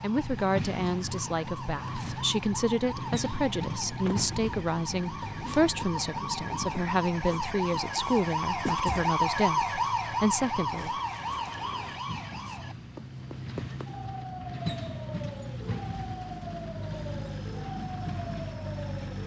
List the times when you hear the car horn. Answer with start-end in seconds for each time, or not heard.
not heard.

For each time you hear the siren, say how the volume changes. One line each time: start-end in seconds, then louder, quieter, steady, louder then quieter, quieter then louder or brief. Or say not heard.
0.0-19.2 louder then quieter.